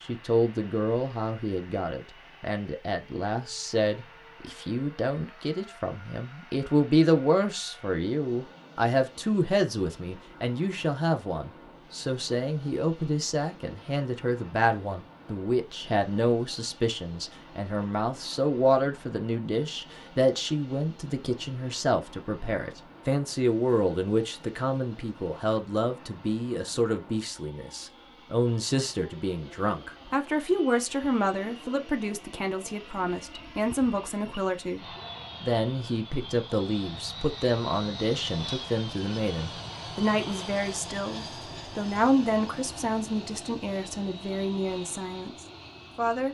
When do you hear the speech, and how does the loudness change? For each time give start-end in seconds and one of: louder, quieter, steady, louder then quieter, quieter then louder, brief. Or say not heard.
0.0-46.2 steady.